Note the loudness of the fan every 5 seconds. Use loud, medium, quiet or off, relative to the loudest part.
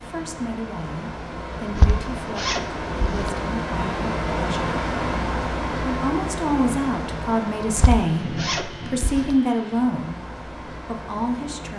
loud, loud, medium.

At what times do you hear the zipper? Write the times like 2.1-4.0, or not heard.
1.8-3.4, 7.8-9.3.